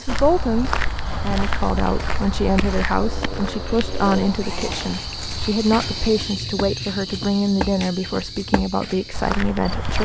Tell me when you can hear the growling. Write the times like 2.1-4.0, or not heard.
2.9-5.0.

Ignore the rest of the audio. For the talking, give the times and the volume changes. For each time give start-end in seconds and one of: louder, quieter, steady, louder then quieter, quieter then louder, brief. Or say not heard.
0.0-10.0 steady.